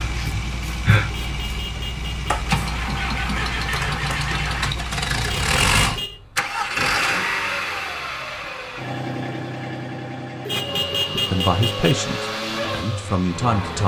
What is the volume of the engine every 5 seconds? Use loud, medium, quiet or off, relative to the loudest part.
loud, loud, medium.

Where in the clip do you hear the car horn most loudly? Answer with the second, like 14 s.
11 s.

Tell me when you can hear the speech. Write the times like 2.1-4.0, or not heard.
11.2-13.8.